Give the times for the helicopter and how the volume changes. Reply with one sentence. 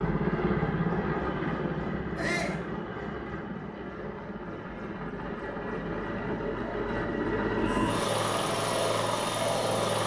The helicopter can be heard from 0.0 to 10.0 s, getting quieter then louder.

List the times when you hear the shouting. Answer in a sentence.
You can hear the shouting from 2.1 to 2.6 s and from 7.6 to 8.1 s.